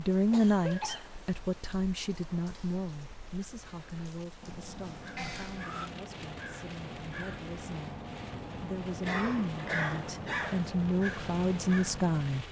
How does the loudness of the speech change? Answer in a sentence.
The loudness of the speech goes down, then up.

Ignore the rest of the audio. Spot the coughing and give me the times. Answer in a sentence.
The coughing can be heard from 0.3 to 1.1 s, from 5.2 to 5.9 s and from 9.0 to 10.6 s.